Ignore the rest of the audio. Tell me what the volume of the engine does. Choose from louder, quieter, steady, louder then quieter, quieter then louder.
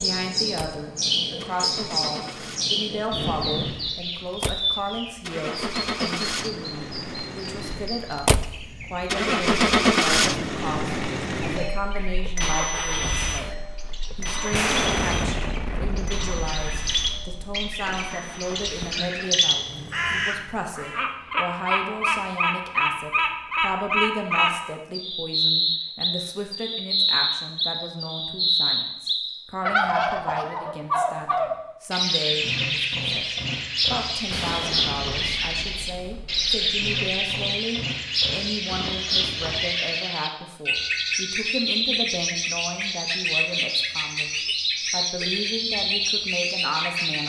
louder then quieter.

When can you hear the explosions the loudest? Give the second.
15 s.